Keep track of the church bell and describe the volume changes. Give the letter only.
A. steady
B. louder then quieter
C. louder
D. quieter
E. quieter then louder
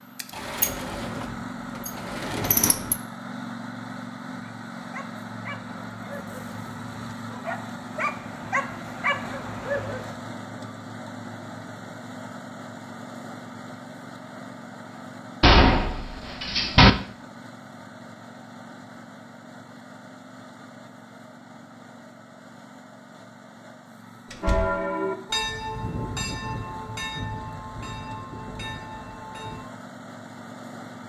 D.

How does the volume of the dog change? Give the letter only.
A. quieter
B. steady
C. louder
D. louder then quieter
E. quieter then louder
C.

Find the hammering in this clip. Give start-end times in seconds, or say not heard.
not heard.